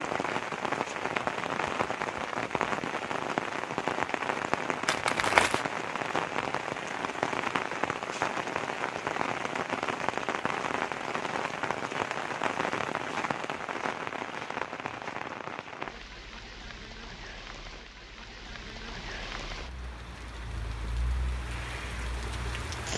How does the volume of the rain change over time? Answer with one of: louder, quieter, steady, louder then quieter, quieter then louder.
quieter.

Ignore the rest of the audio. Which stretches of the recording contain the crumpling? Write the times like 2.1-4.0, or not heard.
4.8-5.7.